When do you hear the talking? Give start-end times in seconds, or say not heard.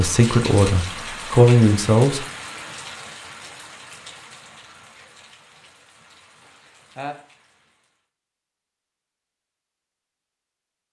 0.0-2.2.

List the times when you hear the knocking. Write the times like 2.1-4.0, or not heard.
not heard.